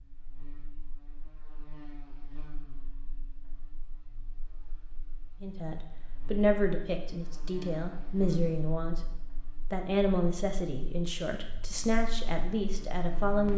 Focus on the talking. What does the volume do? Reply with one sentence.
The loudness of the talking stays about the same.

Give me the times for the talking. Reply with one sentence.
The talking can be heard from 5.4 to 9.0 s and from 9.7 to 13.5 s.